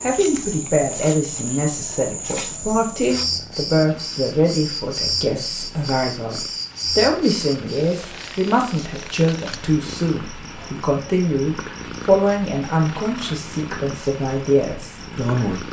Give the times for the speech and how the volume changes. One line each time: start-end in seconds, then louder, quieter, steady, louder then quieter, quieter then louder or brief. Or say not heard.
0.0-15.6 steady.